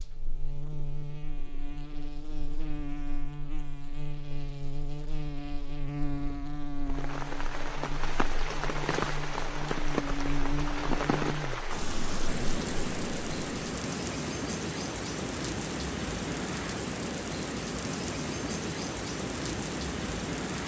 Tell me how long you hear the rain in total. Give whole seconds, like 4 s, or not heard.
14 s.